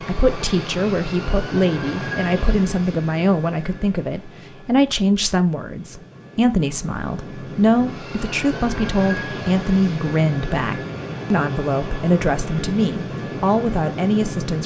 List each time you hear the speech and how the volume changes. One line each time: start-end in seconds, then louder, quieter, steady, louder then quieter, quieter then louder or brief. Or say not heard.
0.0-14.6 steady.